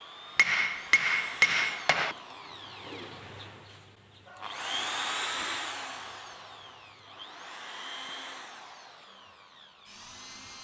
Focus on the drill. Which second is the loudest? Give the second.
5 s.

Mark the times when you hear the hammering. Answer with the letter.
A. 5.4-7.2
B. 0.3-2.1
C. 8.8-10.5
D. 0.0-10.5
B.